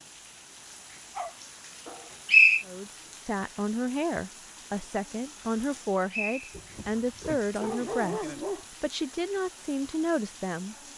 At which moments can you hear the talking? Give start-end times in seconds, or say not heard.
2.6-10.8.